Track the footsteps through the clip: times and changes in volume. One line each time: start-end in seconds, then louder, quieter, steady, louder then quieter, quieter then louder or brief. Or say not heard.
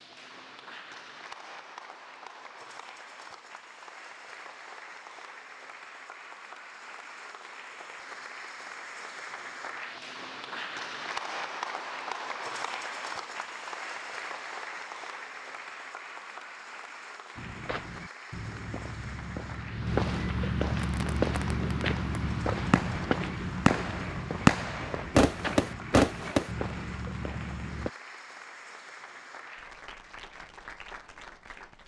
17.4-27.9 louder then quieter.